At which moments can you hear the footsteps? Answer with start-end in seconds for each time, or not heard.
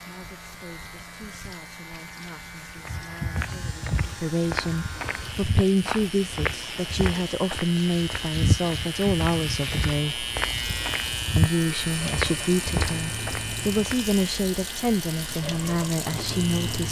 2.8-14.2.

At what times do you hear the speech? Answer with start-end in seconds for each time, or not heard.
0.0-10.2, 11.3-16.8.